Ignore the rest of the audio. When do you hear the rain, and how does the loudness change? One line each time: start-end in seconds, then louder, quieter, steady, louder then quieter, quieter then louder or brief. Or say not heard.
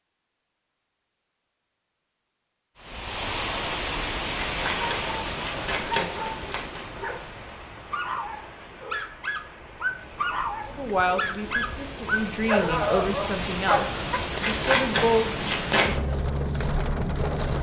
2.8-17.5 quieter then louder.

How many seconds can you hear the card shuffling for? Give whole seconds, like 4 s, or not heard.
4 s.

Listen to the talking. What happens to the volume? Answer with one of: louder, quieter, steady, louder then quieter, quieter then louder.
louder.